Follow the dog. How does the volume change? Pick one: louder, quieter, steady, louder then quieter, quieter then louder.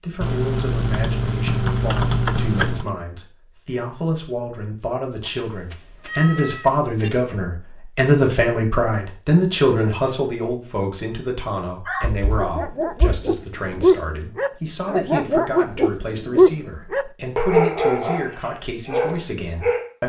louder then quieter.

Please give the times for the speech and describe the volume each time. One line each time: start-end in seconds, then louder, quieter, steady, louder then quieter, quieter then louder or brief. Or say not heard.
0.0-20.0 louder then quieter.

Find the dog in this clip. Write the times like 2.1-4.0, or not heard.
11.8-19.9.